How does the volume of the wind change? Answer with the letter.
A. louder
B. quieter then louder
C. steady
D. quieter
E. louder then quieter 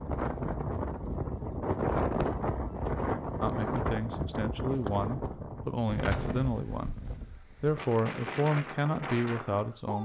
D.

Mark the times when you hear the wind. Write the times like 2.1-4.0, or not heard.
0.0-9.9.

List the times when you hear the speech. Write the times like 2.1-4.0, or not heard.
3.4-9.9.